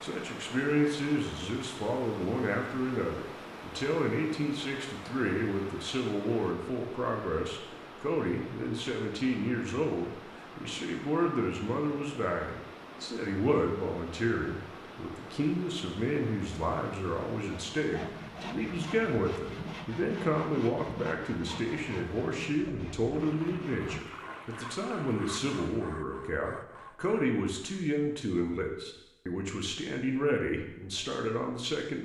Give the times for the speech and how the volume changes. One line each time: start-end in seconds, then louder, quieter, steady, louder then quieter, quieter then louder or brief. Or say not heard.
0.0-32.0 steady.